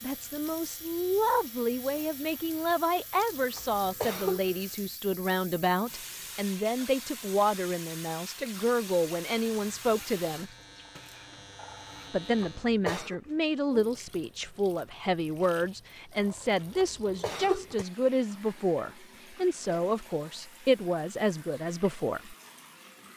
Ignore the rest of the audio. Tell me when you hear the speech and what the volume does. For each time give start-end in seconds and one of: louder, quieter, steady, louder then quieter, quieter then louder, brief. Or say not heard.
0.0-10.5 steady
12.1-22.4 steady.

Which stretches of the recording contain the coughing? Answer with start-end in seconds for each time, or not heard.
3.5-4.5, 12.4-13.2, 16.8-17.9.